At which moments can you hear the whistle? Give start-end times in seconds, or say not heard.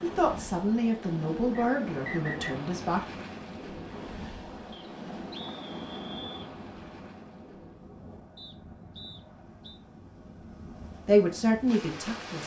1.6-2.5, 4.7-6.5, 8.3-9.8.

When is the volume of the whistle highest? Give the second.
2 s.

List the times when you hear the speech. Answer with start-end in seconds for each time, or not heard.
0.0-3.0, 11.1-12.4.